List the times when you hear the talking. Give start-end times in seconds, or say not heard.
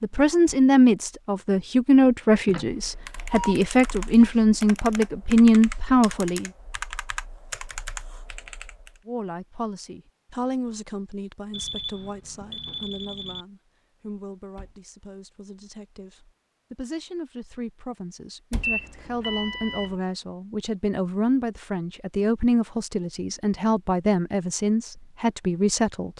0.0-6.5, 9.1-26.1.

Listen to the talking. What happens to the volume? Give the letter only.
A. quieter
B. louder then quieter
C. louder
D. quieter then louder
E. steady
D.